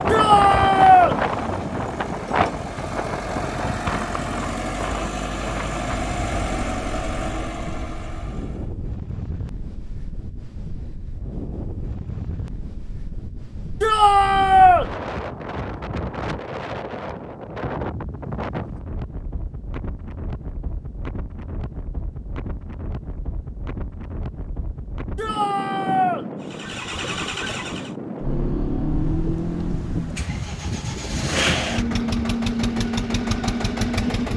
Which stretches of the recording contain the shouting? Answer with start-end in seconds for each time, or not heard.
0.1-1.1, 13.8-14.8, 25.1-26.2.